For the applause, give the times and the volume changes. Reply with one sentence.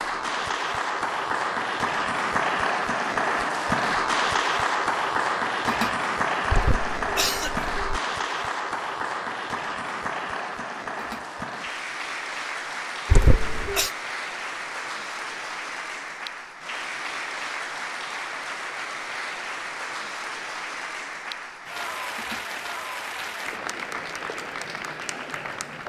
You can hear the applause from 0.0 to 25.8 s, getting quieter.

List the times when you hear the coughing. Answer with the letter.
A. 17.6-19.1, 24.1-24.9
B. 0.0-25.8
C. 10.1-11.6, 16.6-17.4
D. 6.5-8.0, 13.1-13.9
D.